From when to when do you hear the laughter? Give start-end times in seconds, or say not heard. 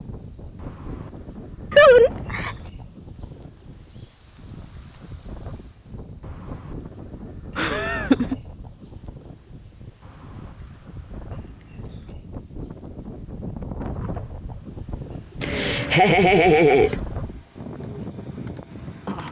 1.7-2.5, 7.5-8.3, 15.4-17.0.